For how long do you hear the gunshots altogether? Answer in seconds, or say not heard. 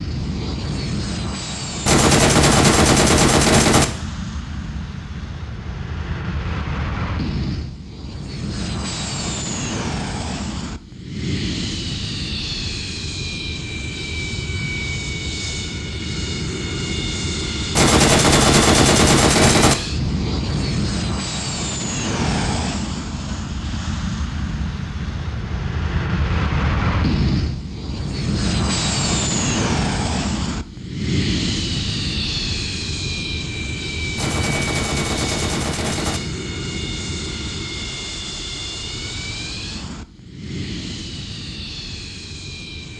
6 s.